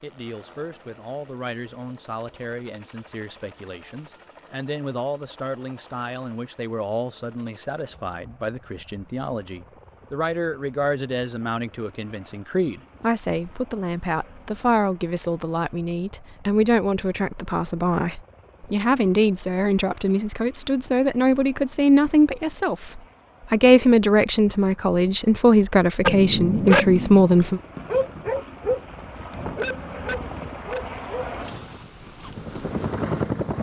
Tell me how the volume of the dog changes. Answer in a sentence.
The volume of the dog goes down.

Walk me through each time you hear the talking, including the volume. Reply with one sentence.
The talking can be heard from 0.0 to 27.6 s, getting louder.